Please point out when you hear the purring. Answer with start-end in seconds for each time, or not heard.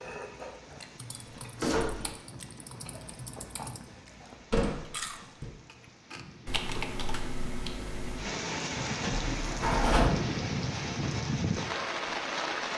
not heard.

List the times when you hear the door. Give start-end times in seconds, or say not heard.
1.1-2.1, 4.5-5.5, 9.3-10.1.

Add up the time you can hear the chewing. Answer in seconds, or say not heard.
6 s.